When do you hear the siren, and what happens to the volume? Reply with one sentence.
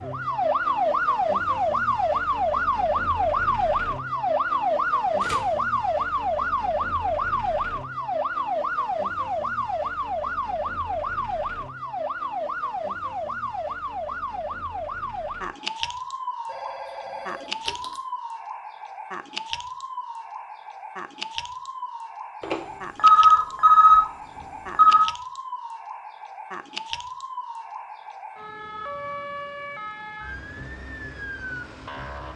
The siren can be heard from 0.0 to 32.3 s, getting quieter.